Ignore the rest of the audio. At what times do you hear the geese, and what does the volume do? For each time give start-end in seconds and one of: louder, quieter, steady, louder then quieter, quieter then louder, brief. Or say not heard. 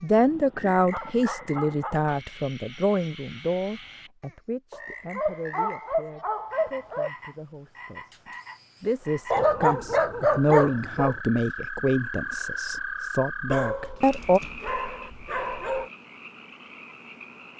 not heard.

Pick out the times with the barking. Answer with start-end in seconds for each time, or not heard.
0.1-2.1, 4.7-7.1, 9.3-11.2, 13.4-15.9.